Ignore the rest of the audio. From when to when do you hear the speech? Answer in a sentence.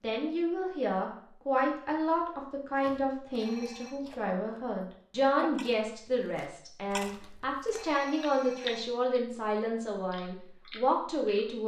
You can hear the speech from 0.0 to 11.6 s.